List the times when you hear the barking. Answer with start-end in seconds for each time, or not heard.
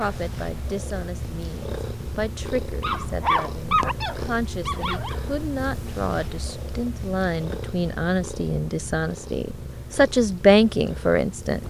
2.8-5.2.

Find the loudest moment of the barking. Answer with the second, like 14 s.
4 s.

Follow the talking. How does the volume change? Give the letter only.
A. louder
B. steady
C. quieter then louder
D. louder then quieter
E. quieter
A.